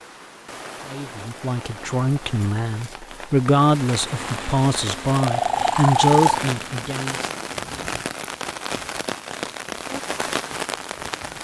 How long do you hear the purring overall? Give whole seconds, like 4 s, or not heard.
3 s.